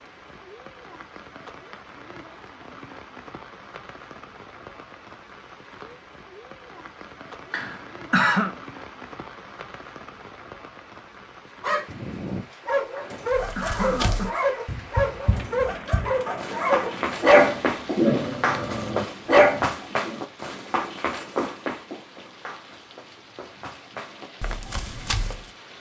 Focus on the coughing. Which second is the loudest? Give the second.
8 s.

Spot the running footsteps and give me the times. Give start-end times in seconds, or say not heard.
13.3-25.5.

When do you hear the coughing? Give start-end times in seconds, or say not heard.
7.5-8.6, 12.9-14.4.